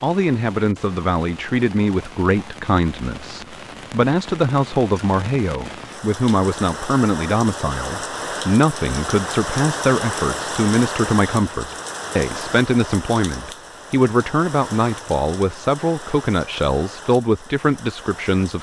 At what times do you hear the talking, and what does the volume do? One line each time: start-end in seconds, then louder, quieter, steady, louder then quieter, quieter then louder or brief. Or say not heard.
0.0-18.5 steady.